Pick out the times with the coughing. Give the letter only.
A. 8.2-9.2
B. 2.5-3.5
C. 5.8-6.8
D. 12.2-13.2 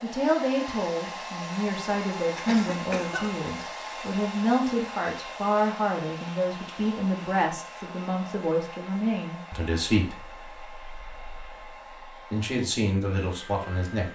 B.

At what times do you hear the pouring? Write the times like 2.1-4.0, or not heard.
not heard.